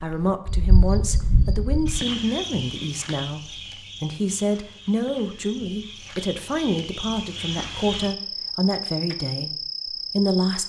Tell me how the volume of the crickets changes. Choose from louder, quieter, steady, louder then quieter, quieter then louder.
quieter then louder.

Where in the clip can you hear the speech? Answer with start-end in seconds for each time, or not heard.
0.0-10.6.